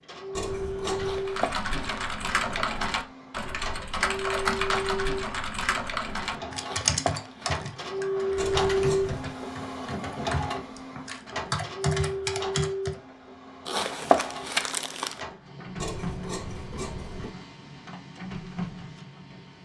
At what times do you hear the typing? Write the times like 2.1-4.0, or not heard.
1.2-12.9.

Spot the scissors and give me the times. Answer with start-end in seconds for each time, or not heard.
0.3-1.4, 8.3-9.3, 15.8-17.3.